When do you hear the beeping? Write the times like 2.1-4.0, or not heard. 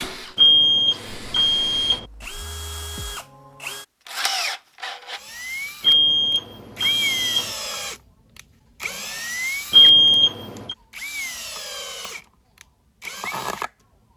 0.3-2.0, 5.8-7.5, 9.7-10.8.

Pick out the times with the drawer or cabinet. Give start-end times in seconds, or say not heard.
not heard.